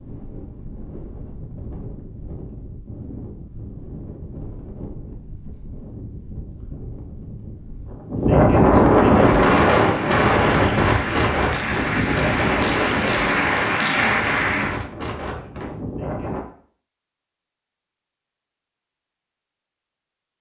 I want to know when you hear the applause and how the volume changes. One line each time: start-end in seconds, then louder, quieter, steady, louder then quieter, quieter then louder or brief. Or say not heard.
9.2-14.8 louder.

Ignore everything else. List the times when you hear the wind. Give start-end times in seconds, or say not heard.
0.0-16.4.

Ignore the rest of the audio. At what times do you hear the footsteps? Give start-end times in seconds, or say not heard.
not heard.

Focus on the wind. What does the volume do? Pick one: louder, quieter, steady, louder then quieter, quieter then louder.
louder then quieter.